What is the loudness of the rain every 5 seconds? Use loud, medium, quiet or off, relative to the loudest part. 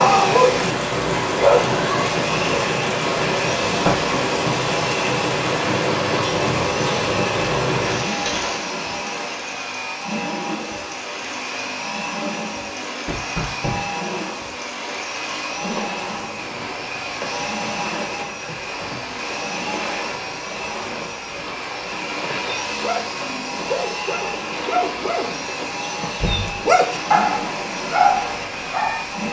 loud, loud, quiet, quiet, quiet, quiet.